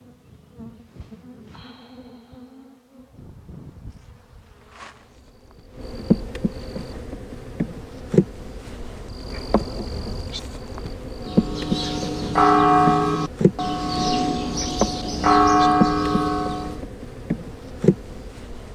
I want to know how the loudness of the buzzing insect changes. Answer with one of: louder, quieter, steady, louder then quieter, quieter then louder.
louder.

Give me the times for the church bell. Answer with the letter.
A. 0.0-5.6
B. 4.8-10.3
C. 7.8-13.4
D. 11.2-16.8
D.